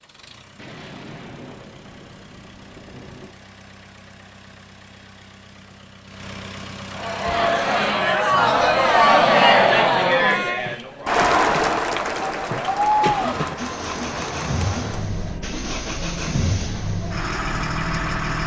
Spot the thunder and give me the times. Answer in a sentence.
The thunder can be heard from 0.6 to 3.3 s.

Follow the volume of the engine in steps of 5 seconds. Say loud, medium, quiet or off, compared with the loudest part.
quiet, medium, loud, loud.